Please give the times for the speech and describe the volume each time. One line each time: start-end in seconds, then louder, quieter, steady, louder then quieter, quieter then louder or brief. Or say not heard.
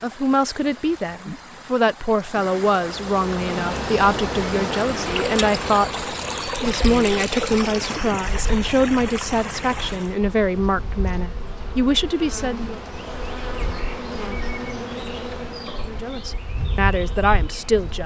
0.0-12.8 steady
15.8-18.0 brief.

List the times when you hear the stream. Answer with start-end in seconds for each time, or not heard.
0.0-10.2.